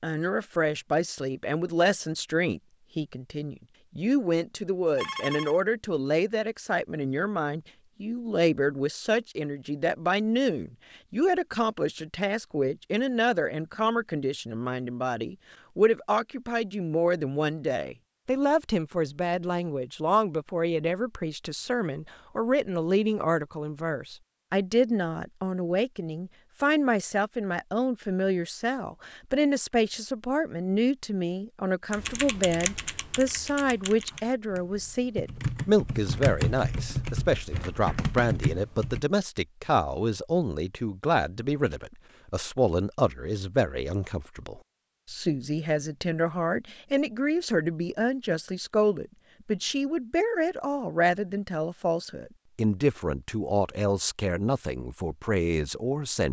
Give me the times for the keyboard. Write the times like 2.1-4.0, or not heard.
31.9-39.0.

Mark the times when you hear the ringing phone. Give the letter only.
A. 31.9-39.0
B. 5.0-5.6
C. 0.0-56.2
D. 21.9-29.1
B.